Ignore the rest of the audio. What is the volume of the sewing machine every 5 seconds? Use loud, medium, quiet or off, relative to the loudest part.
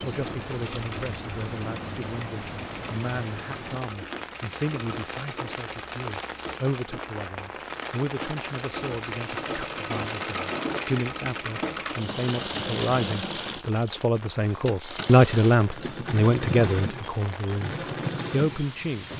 medium, medium, loud, loud.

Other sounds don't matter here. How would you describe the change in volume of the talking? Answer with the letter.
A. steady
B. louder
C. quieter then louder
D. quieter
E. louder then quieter
B.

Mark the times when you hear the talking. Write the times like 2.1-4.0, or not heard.
0.0-19.1.